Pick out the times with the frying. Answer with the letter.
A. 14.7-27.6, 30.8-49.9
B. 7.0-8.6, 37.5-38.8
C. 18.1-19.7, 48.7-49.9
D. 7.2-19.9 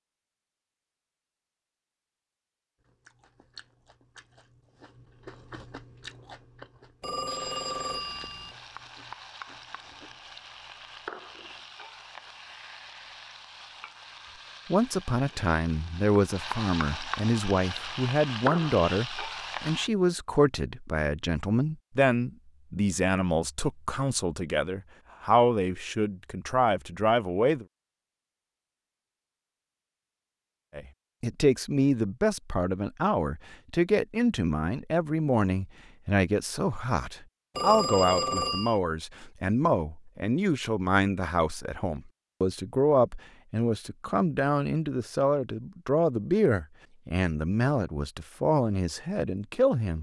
D.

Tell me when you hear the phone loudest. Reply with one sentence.
The loudest moment of the phone is at 38 seconds.